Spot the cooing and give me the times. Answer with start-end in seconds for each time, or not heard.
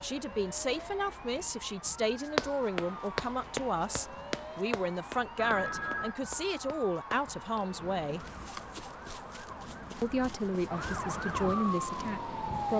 not heard.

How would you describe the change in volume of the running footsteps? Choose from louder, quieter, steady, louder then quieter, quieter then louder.
quieter.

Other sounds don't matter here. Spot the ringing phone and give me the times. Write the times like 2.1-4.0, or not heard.
5.3-6.2.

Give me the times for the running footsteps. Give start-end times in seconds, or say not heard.
2.2-12.1.